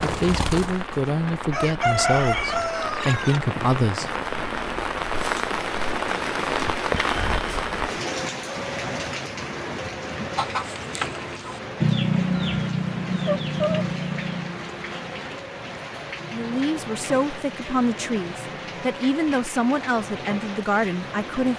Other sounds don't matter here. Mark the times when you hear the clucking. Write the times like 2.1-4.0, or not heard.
0.0-3.4, 10.3-18.9.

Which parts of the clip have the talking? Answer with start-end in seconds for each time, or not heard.
0.0-4.2, 16.3-21.5.